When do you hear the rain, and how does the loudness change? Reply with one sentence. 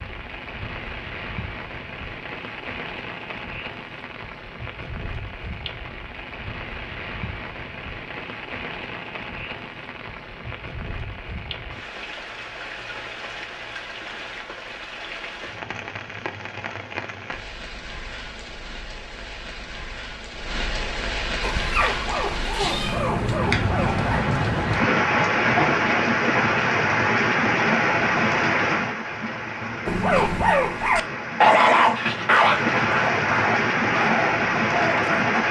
The rain can be heard from 0.0 to 35.4 s, getting louder.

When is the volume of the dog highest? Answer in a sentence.
The loudest moment of the dog is at 32 seconds.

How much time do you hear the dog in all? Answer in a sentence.
The dog can be heard for 8 seconds in total.